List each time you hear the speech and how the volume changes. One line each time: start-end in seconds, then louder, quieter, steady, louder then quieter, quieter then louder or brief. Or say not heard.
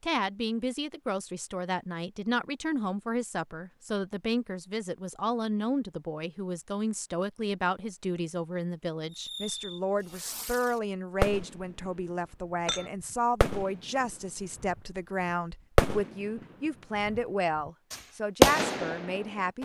0.0-19.5 steady.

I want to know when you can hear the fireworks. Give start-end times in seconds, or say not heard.
9.1-11.9, 13.1-19.5.